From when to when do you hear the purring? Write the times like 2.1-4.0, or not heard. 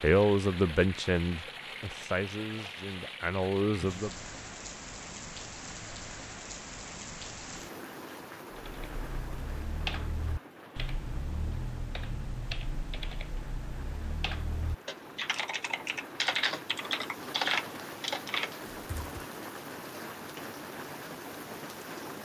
not heard.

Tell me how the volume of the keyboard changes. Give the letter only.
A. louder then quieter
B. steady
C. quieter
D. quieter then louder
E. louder
E.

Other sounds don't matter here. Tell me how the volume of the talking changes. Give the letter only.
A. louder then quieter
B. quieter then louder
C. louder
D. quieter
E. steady
B.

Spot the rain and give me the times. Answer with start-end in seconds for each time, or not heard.
0.0-22.2.